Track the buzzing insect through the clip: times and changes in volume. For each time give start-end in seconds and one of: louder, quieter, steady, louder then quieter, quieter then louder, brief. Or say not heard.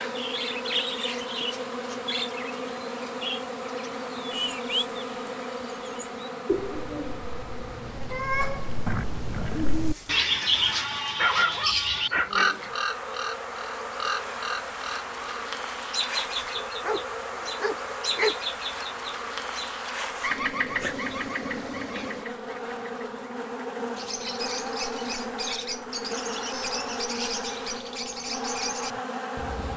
0.0-29.7 quieter then louder.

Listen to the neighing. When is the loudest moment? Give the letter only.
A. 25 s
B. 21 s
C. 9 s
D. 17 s
C.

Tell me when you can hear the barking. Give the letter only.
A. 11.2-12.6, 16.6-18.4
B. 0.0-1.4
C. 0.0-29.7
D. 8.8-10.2
A.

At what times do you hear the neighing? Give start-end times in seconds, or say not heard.
8.8-10.2.